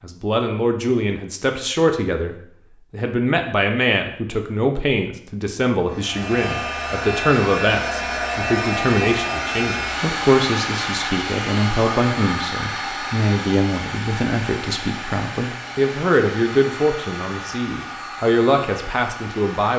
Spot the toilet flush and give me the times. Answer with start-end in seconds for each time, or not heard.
not heard.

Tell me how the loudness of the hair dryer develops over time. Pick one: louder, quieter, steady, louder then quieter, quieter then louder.
quieter.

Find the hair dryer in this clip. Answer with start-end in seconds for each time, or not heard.
5.8-19.7.